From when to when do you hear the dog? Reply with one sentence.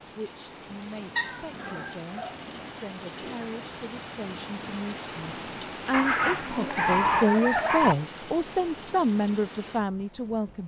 You can hear the dog from 1.1 to 3.5 s and from 5.9 to 8.0 s.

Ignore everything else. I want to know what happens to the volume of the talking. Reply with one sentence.
The loudness of the talking goes up.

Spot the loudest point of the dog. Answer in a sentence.
The volume of the dog peaks at 7 seconds.